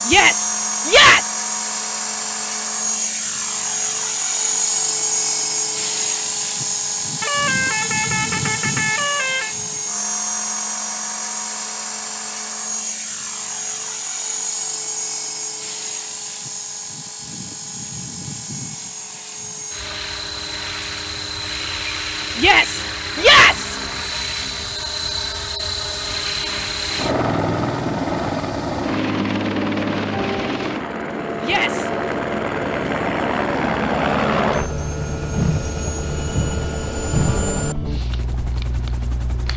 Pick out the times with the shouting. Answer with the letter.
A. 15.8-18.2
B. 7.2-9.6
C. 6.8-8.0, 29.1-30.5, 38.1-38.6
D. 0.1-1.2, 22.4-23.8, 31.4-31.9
D.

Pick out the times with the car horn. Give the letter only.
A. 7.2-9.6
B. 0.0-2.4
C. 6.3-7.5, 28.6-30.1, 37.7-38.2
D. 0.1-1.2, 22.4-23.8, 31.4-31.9
A.